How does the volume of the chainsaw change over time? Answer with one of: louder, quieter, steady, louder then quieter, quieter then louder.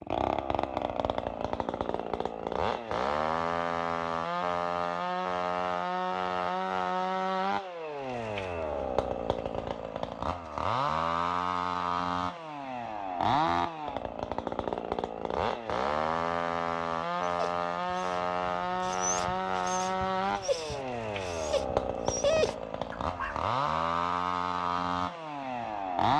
steady.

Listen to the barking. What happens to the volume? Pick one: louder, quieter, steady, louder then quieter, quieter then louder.
louder.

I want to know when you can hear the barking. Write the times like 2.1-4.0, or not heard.
17.2-23.4.